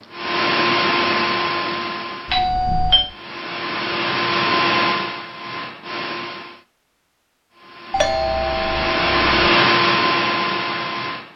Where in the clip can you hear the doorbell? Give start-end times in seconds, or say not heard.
2.2-3.1, 7.9-9.5.